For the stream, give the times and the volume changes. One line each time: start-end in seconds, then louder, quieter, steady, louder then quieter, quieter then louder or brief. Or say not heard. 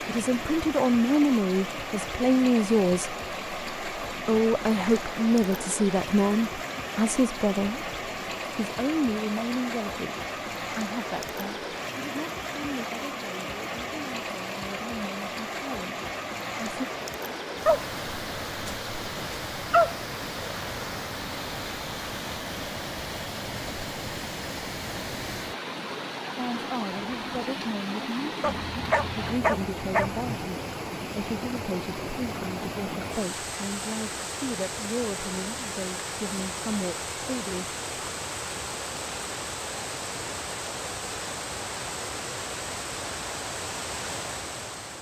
0.0-44.9 steady.